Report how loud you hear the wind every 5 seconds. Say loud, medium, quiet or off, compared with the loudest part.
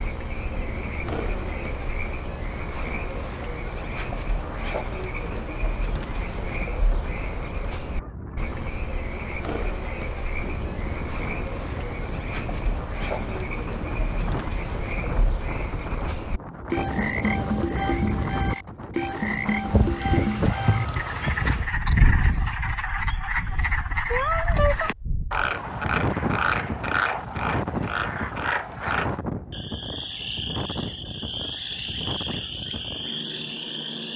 quiet, medium, medium, loud, loud, loud, medium.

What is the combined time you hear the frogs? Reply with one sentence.
The frogs can be heard for 34 seconds in total.